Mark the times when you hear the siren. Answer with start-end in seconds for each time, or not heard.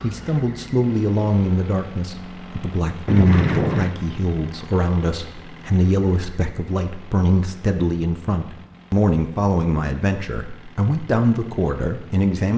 not heard.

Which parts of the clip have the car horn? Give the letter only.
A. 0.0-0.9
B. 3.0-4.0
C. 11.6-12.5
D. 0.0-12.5
B.